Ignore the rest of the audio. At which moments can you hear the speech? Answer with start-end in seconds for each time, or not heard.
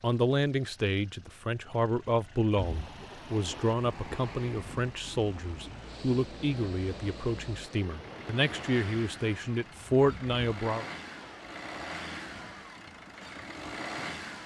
0.0-10.8.